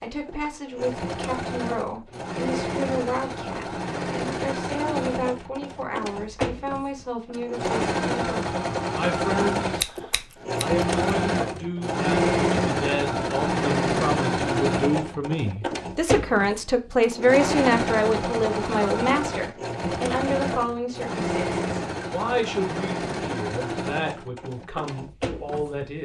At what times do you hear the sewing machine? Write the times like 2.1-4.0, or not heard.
0.0-25.9.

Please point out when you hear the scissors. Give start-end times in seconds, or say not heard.
9.8-10.8.